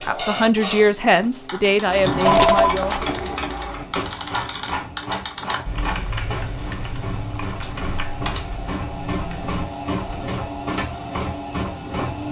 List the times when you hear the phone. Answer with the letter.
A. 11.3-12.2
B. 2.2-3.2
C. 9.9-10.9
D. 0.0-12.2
B.